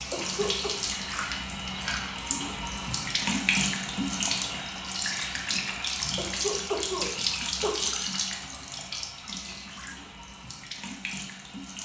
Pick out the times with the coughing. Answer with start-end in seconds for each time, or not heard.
0.1-0.7, 6.2-7.9.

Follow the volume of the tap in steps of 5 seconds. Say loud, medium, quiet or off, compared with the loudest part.
loud, loud, medium.